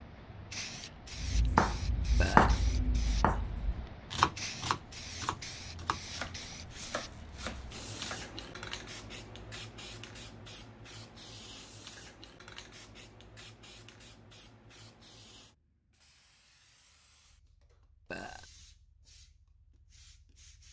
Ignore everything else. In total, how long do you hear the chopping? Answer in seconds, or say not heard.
7 s.